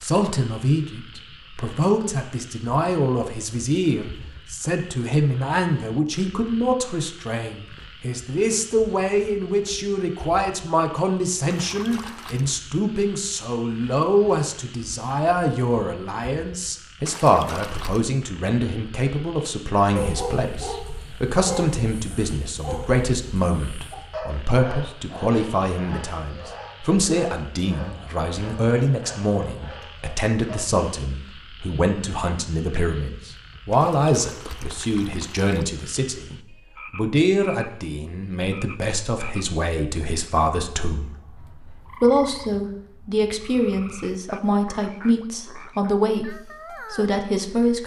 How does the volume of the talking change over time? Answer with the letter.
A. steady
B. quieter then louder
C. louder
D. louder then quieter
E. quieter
A.